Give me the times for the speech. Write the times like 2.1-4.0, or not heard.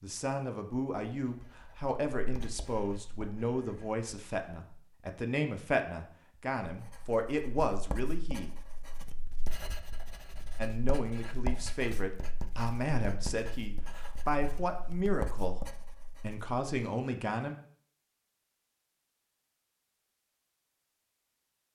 0.0-8.5, 10.6-17.6.